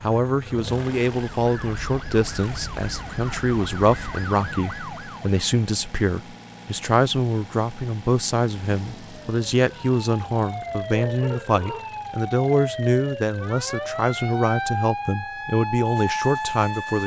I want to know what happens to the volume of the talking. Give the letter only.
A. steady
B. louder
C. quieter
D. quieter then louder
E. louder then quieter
A.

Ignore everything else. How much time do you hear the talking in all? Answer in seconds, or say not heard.
17 s.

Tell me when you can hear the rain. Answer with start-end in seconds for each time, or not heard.
not heard.